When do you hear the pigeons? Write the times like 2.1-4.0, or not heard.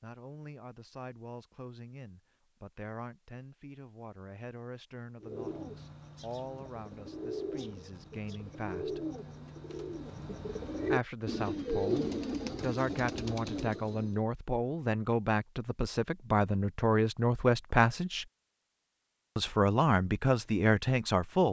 5.2-14.2.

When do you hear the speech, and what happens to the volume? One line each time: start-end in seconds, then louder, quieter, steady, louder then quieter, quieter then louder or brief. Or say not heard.
0.0-9.1 steady
10.9-18.2 louder
19.4-21.4 brief.